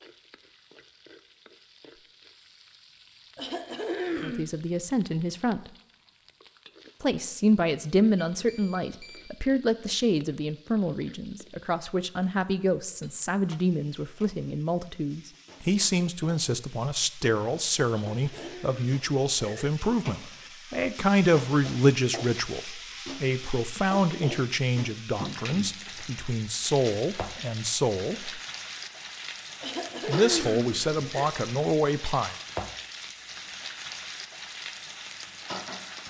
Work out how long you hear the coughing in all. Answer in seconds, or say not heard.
5 s.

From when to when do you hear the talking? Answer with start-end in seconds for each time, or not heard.
4.2-5.7, 7.0-28.4, 30.1-32.4.